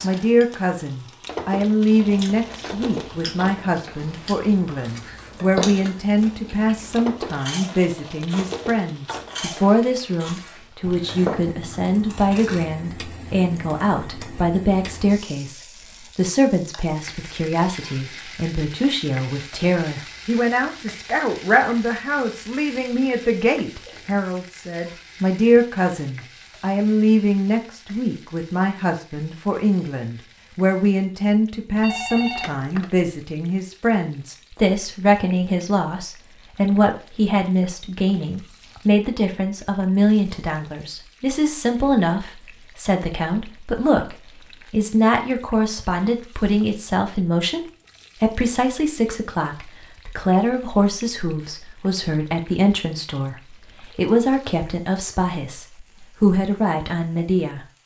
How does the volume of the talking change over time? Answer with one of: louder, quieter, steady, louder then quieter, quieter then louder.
steady.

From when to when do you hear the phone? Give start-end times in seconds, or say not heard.
31.8-33.1.